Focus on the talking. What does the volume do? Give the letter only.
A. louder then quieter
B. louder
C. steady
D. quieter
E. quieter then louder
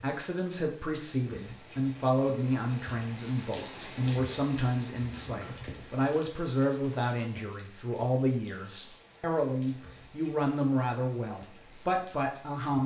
C.